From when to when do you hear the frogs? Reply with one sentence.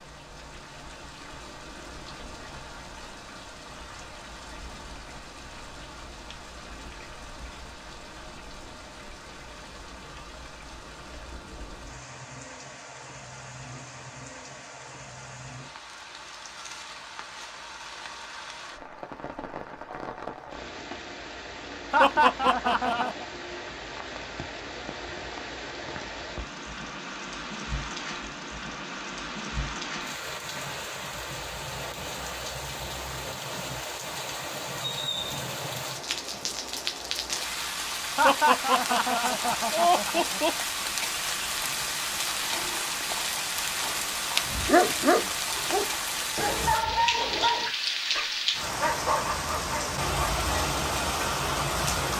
The frogs can't be heard in this clip.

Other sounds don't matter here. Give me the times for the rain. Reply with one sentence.
You can hear the rain from 0.0 to 52.1 s.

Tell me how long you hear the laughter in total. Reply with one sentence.
The laughter can be heard for 4 seconds in total.